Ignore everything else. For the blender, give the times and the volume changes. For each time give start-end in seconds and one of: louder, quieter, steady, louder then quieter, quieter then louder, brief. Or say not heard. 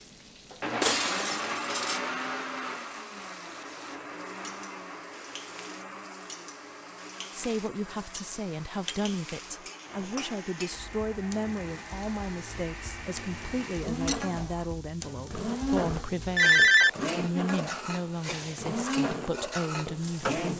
0.0-20.5 quieter then louder.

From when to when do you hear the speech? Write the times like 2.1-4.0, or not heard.
7.3-20.5.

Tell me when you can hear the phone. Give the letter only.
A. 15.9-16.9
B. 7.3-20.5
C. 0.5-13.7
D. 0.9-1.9
A.